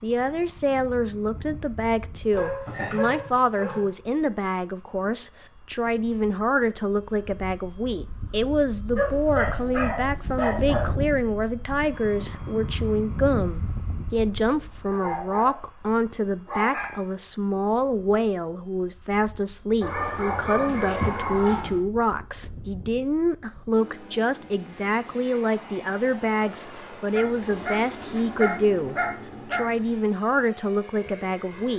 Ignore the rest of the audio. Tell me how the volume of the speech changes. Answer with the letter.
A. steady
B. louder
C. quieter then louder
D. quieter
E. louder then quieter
A.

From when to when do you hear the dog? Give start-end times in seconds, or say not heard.
2.3-3.9, 8.9-10.9, 14.9-15.6, 16.4-16.9, 19.8-21.8, 27.1-30.0.